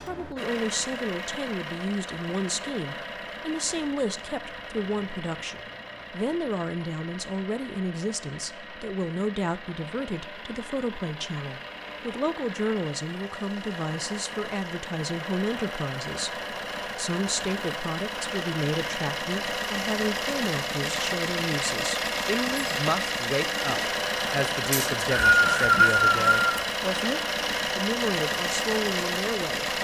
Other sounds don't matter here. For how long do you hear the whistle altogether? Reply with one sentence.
The whistle can be heard for 2 seconds in total.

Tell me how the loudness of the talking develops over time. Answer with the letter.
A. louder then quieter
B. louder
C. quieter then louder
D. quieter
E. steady
E.